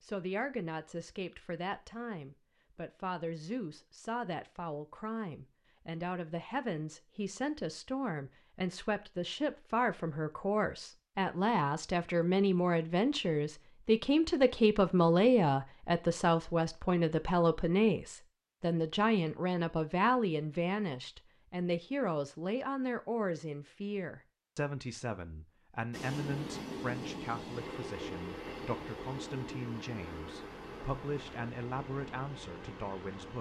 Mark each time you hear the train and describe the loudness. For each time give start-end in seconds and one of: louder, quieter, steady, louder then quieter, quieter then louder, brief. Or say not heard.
25.9-33.3 quieter.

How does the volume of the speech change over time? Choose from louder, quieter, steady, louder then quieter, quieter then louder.
louder then quieter.